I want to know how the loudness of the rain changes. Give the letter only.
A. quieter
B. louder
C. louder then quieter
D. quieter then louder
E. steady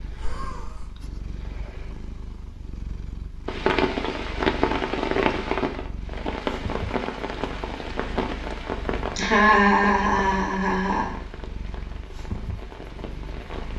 A.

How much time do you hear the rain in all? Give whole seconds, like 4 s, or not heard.
10 s.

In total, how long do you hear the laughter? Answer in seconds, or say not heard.
3 s.